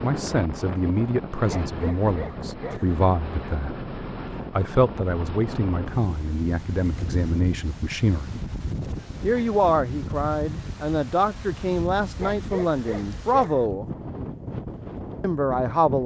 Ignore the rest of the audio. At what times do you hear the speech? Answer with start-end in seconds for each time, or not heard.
0.0-3.8, 4.5-8.3, 9.2-13.8, 15.2-16.0.